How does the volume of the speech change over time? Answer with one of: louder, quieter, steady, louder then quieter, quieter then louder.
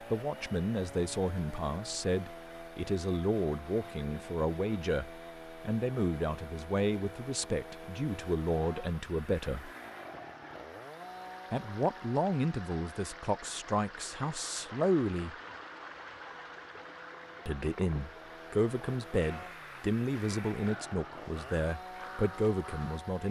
steady.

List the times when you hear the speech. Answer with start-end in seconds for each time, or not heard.
0.1-9.7, 11.5-15.3, 17.4-23.2.